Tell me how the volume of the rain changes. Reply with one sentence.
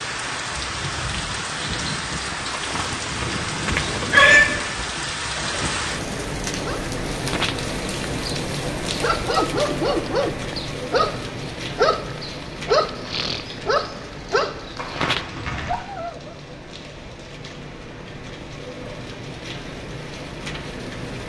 The loudness of the rain goes down.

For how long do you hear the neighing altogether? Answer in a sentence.
The neighing can be heard for 3 seconds in total.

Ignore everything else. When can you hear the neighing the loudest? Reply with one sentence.
The loudest moment of the neighing is at 4 seconds.